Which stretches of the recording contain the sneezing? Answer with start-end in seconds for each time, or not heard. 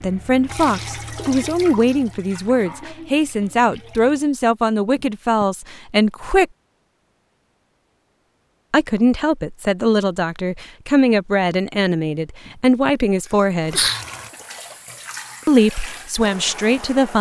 5.0-5.5, 12.4-14.3.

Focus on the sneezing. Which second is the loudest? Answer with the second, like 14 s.
14 s.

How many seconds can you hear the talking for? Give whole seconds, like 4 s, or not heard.
13 s.